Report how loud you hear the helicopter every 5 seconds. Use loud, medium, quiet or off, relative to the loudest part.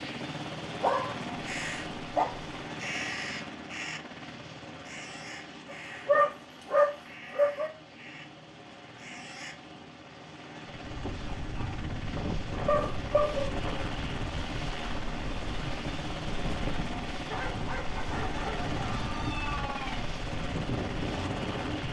loud, medium, loud, loud, loud.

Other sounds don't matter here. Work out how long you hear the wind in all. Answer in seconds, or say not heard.
11 s.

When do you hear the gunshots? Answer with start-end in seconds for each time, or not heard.
not heard.